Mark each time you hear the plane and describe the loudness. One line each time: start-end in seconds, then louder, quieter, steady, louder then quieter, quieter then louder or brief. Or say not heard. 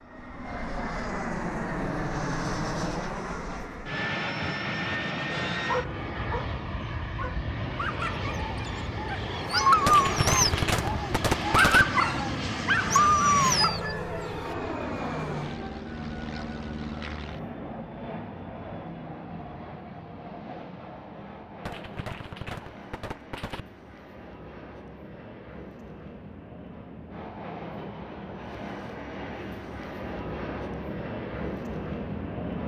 0.0-32.6 quieter then louder.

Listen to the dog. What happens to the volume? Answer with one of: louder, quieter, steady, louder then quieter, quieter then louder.
louder.